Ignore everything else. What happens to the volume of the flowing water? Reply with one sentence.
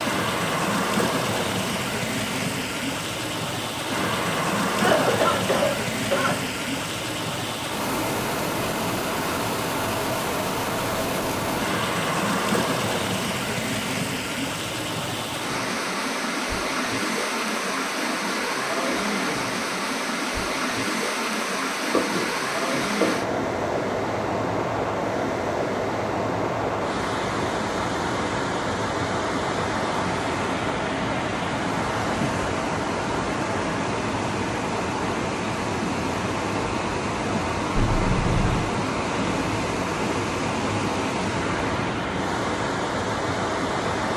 The loudness of the flowing water stays about the same.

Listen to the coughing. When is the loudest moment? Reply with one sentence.
The loudest moment of the coughing is at 5 seconds.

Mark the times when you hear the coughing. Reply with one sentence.
The coughing can be heard from 4.8 to 6.3 s, from 21.9 to 23.2 s and from 37.8 to 38.7 s.